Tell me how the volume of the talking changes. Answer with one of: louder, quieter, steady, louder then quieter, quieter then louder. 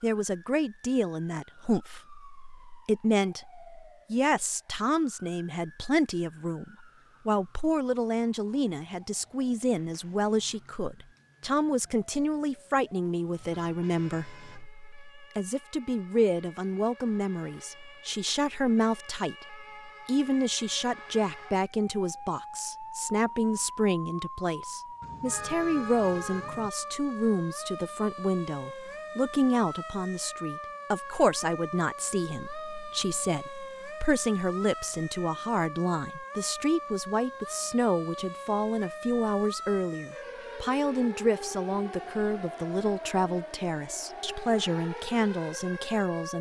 steady.